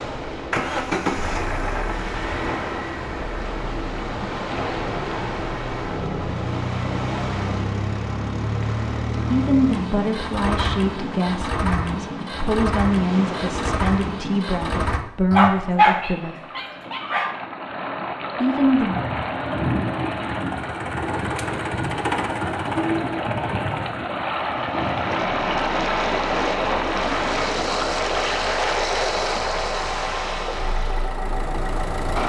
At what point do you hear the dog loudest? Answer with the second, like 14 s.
16 s.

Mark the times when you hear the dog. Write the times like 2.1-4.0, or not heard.
15.3-17.3.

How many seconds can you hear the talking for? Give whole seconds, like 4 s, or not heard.
8 s.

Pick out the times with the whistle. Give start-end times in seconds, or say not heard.
not heard.